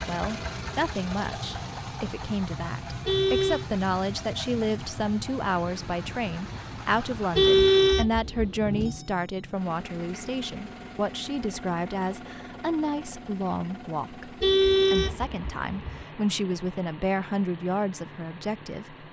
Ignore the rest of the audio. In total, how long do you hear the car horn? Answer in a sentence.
The car horn can be heard for 4 seconds in total.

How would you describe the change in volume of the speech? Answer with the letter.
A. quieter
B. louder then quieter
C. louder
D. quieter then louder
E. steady
E.